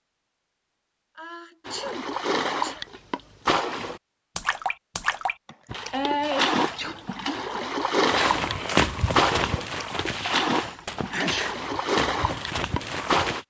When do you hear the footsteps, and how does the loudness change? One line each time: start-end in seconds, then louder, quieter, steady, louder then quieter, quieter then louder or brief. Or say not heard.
8.1-13.4 quieter.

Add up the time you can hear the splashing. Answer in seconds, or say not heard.
12 s.